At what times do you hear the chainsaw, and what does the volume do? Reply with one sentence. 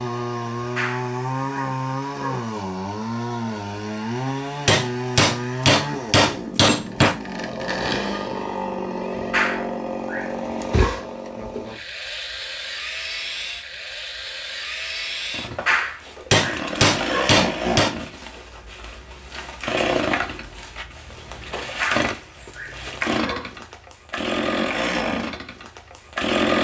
The chainsaw can be heard from 0.0 to 26.6 s, at a steady volume.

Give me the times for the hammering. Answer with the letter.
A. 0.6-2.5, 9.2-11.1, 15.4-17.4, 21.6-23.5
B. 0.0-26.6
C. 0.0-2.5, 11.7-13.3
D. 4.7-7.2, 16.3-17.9
D.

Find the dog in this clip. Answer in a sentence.
The dog can be heard from 0.6 to 2.5 s, from 9.2 to 11.1 s, from 15.4 to 17.4 s and from 21.6 to 23.5 s.